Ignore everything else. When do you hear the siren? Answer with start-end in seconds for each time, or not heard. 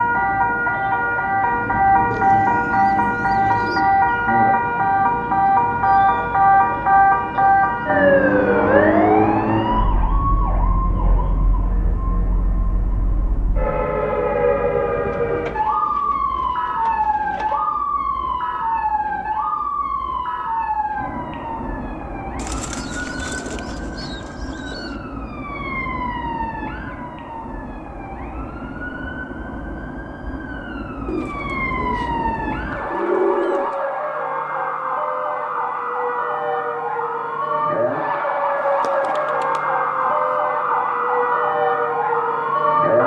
0.0-43.0.